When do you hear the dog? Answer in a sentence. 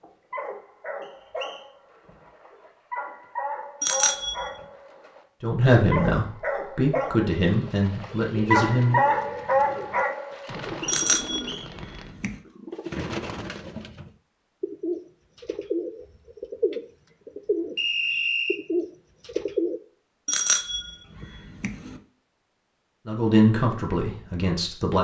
You can hear the dog from 0.0 to 10.8 s.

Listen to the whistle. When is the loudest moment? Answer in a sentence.
The volume of the whistle peaks at 18 seconds.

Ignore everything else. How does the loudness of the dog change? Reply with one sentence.
The volume of the dog goes up.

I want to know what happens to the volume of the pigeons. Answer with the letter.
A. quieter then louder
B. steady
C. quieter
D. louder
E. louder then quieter
D.